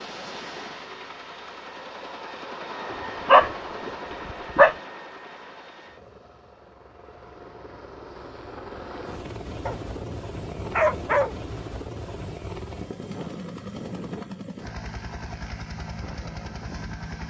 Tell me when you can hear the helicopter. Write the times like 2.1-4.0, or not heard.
0.0-17.2.